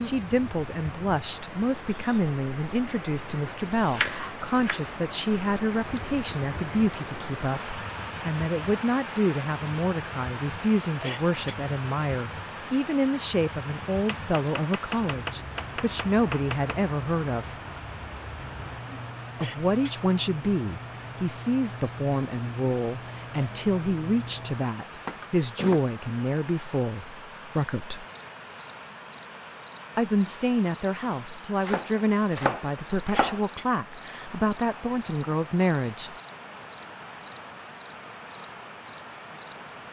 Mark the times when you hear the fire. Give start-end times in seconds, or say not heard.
not heard.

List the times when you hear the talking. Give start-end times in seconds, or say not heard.
0.0-17.6, 19.4-28.1, 29.9-36.1.